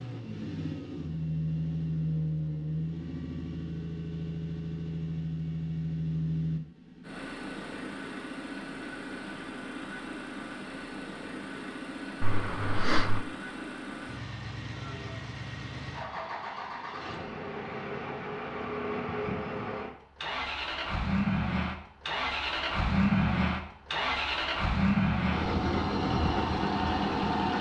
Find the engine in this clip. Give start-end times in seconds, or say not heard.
0.0-27.5.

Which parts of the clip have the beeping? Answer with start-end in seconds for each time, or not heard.
12.2-13.2.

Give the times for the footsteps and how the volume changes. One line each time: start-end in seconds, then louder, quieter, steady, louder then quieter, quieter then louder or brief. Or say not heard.
not heard.